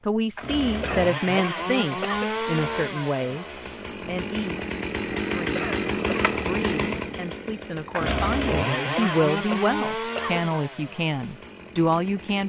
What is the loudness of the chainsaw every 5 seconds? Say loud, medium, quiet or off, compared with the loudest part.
loud, loud, medium.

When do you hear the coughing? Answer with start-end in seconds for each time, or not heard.
0.8-2.3, 5.5-6.3, 8.9-10.4.